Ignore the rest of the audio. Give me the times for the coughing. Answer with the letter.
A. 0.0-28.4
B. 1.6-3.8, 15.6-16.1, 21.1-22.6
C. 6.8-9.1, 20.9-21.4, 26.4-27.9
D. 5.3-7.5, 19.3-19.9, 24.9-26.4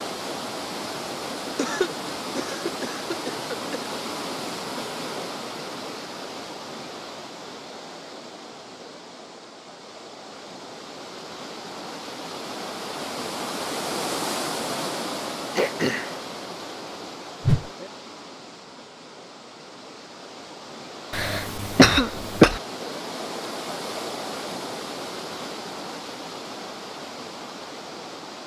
B.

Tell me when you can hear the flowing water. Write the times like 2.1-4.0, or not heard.
0.0-28.4.